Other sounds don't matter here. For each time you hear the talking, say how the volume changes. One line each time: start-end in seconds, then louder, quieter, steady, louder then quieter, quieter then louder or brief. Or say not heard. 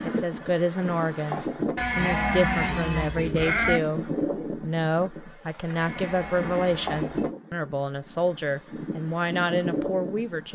0.0-10.5 steady.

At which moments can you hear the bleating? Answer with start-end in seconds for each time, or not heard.
1.8-3.8, 5.8-7.3.